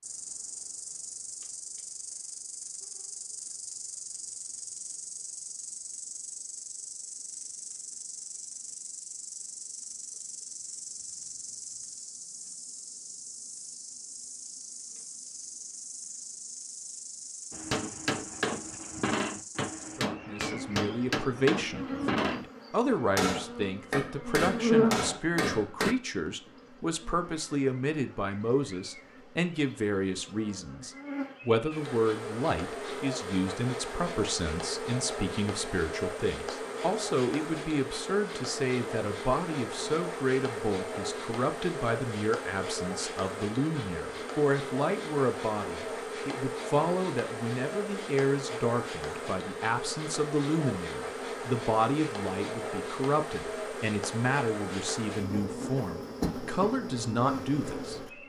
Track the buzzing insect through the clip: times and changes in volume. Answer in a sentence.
The buzzing insect can be heard from 0.0 to 58.2 s, getting louder.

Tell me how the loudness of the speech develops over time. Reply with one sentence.
The loudness of the speech stays about the same.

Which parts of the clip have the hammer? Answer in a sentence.
You can hear the hammer from 17.5 to 25.9 s.